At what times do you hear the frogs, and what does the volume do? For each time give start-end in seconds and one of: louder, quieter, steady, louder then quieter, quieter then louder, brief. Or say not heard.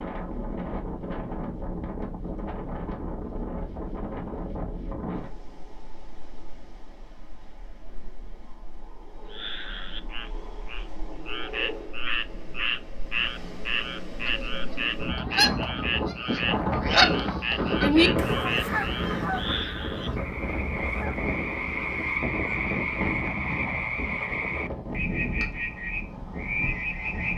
9.3-27.3 steady.